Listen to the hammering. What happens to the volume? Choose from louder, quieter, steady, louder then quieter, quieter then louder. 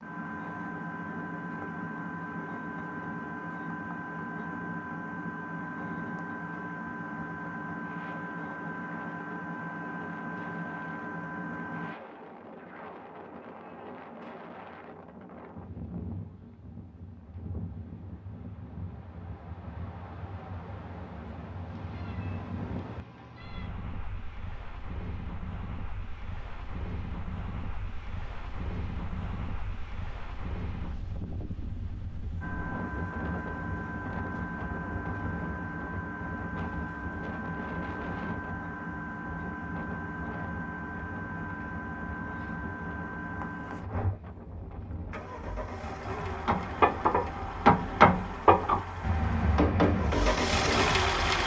louder then quieter.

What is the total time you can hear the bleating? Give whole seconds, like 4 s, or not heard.
not heard.